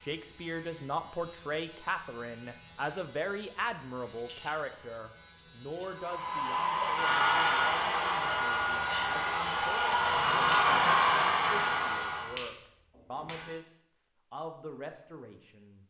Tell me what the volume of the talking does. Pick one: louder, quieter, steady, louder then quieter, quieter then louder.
quieter.